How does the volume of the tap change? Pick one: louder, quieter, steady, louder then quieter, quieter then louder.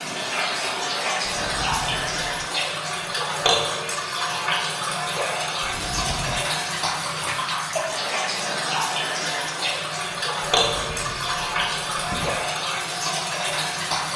steady.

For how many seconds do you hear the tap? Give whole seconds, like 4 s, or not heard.
14 s.